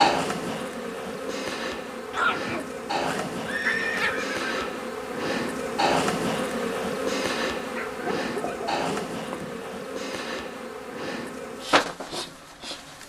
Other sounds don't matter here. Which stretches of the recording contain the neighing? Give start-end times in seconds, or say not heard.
3.5-4.8.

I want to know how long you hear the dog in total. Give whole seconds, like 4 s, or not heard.
4 s.